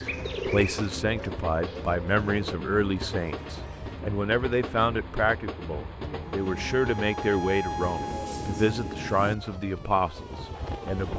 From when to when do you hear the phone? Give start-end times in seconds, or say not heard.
not heard.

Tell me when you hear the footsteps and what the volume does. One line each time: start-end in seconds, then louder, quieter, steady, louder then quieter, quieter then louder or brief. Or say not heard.
not heard.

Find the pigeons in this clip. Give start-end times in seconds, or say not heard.
0.0-2.5.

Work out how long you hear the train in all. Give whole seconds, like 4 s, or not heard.
11 s.